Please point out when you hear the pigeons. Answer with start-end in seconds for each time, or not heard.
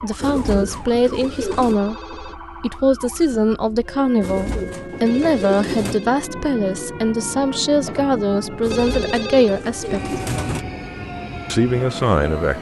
0.2-1.8, 4.2-6.0, 8.6-10.7.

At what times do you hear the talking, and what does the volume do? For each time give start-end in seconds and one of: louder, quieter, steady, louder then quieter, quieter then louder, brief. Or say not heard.
0.0-10.2 steady
11.5-12.5 brief.